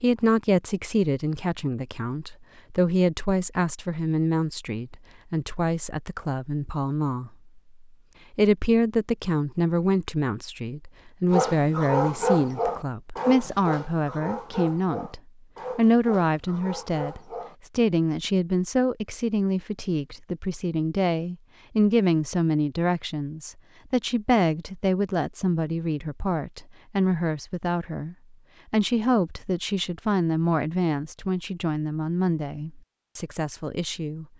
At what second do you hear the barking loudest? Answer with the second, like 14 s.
12 s.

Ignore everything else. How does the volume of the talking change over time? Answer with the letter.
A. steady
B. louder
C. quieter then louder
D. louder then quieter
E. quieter
A.